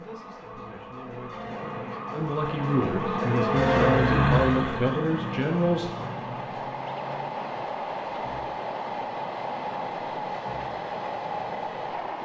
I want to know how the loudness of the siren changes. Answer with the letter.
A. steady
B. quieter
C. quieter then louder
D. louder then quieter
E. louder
D.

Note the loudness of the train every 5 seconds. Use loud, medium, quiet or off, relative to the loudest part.
off, loud, loud.